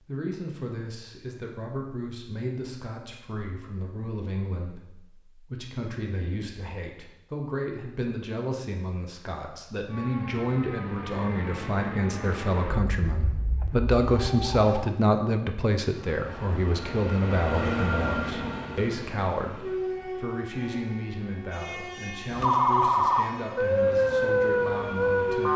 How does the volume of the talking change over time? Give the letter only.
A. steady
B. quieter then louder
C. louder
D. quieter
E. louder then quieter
E.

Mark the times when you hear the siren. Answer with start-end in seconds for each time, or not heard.
9.8-14.9, 22.3-25.5.